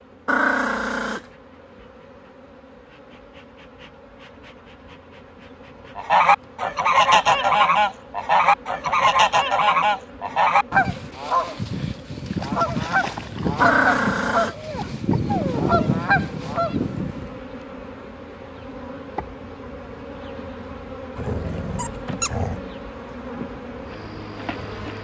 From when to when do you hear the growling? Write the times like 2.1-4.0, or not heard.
0.2-1.2, 13.6-14.6, 21.1-22.6.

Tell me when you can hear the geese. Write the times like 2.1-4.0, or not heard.
6.0-17.4.